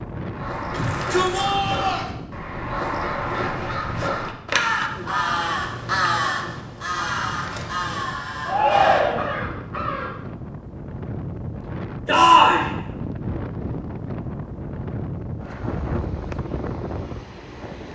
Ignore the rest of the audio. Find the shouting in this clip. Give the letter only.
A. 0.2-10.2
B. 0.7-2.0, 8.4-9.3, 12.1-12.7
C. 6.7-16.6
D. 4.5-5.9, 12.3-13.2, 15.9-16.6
B.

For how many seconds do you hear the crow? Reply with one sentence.
The crow can be heard for 10 seconds in total.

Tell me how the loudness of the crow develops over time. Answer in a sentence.
The volume of the crow goes up, then down.